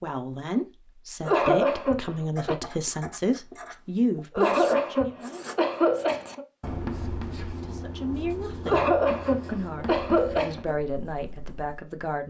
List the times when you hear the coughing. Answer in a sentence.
The coughing can be heard from 1.2 to 2.5 s, from 4.3 to 6.5 s and from 8.7 to 10.8 s.